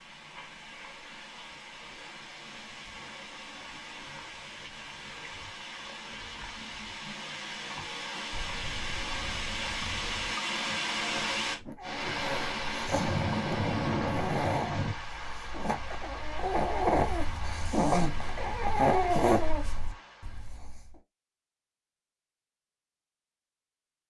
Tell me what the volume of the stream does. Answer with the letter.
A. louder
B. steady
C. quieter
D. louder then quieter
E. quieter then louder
D.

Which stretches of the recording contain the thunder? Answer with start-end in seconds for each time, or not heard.
8.3-10.3, 12.9-14.9.